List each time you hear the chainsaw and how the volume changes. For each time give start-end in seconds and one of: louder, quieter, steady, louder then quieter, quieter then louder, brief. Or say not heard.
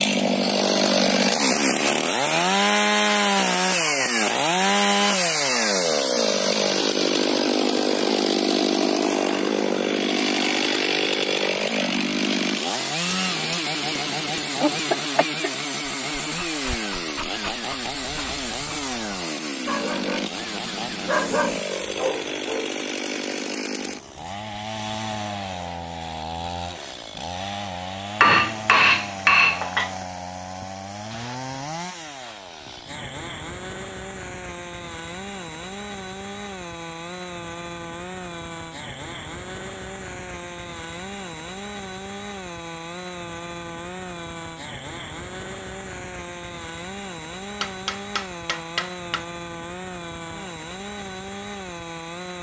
0.0-52.3 quieter.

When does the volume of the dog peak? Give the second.
21 s.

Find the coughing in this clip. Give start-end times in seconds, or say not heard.
14.6-15.5.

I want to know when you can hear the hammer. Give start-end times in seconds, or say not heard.
13.1-15.0, 28.2-29.9, 47.6-49.2.